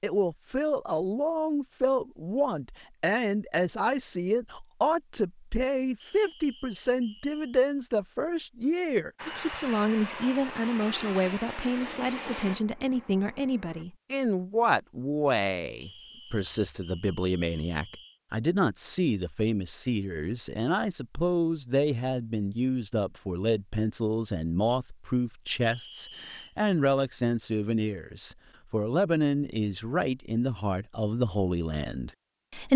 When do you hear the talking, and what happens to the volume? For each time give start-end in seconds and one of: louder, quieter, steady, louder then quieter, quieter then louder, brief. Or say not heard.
0.0-32.7 steady.